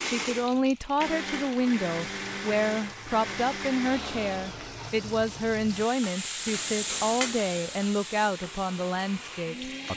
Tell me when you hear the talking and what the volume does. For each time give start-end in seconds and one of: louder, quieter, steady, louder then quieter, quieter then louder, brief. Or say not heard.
0.0-9.9 steady.